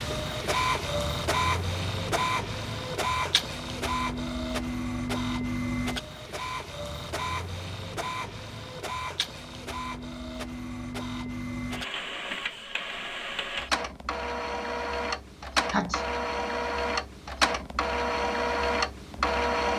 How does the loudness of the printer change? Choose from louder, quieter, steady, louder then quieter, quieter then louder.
quieter then louder.